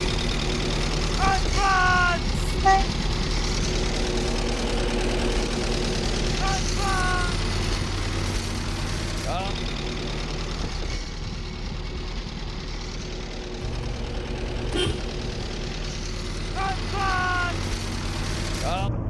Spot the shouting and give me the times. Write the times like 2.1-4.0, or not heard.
1.1-2.3, 6.3-7.4, 16.6-17.6.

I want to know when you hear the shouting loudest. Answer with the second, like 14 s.
2 s.